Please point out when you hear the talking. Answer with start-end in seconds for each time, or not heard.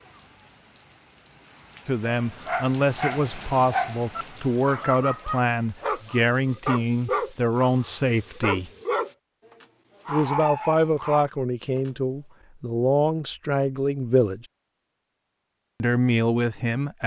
1.9-8.7, 10.1-14.4, 15.8-17.0.